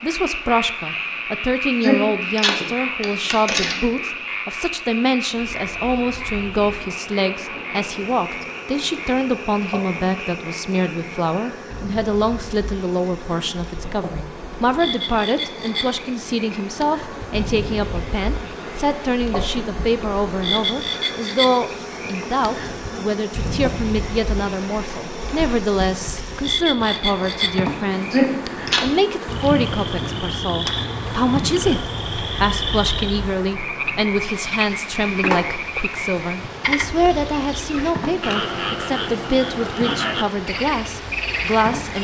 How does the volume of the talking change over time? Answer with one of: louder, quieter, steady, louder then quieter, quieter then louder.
steady.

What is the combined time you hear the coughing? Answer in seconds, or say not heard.
3 s.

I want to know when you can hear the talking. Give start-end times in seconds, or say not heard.
0.0-41.9.